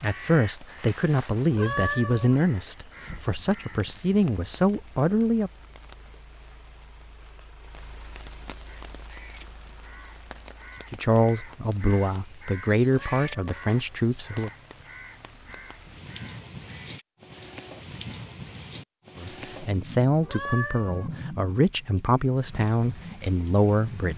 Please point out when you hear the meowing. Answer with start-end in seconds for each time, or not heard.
1.5-2.4, 13.1-13.7, 20.2-21.1.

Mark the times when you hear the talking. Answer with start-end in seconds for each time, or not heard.
0.0-5.5, 10.9-14.5, 19.1-24.1.